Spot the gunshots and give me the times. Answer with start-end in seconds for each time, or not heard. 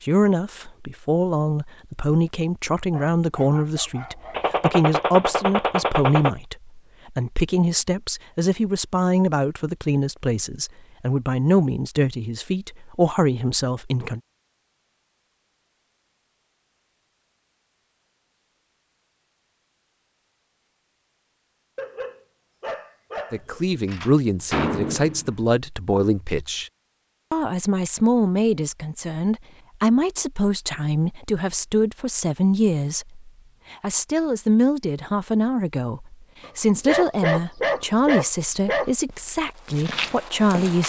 4.3-6.3, 23.9-25.4.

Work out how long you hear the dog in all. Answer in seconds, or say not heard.
6 s.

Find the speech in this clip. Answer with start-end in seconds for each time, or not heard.
0.0-14.2, 23.3-26.7, 27.3-40.8.